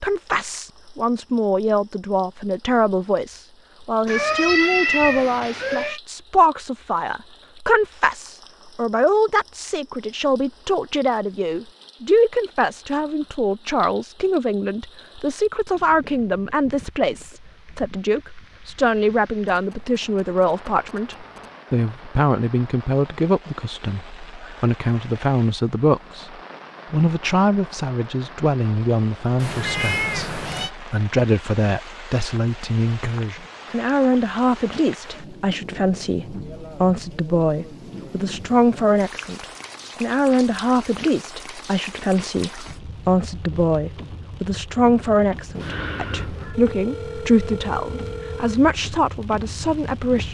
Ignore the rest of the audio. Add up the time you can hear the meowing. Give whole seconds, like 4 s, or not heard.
4 s.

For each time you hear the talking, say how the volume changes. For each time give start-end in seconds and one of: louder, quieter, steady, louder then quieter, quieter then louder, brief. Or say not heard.
0.0-50.2 steady.